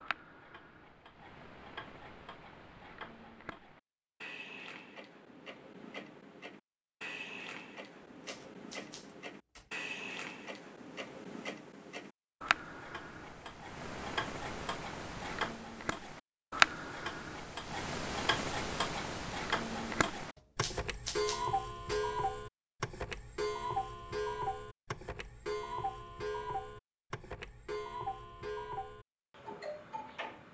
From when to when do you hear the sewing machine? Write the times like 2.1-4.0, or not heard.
not heard.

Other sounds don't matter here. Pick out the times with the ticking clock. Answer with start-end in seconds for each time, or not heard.
0.0-30.5.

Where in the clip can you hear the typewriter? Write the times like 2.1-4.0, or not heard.
8.2-9.7, 20.4-22.1.